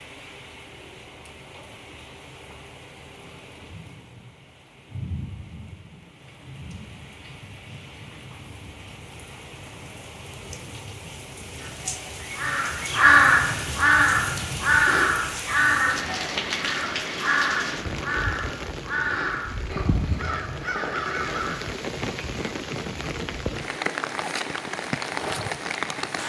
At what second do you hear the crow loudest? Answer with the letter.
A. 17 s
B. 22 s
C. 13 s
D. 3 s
C.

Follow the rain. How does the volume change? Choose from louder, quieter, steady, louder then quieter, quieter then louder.
louder.